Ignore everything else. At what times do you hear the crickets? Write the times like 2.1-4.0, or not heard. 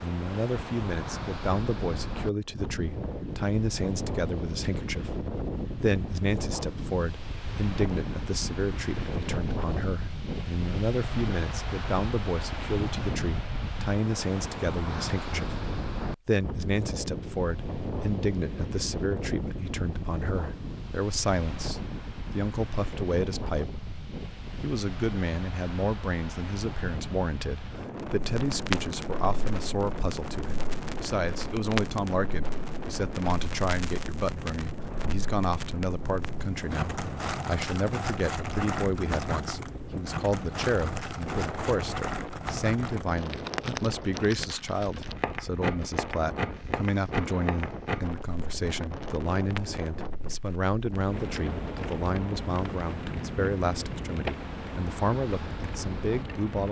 not heard.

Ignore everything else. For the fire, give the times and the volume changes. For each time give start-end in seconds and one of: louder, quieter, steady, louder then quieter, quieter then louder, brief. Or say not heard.
28.0-56.6 steady.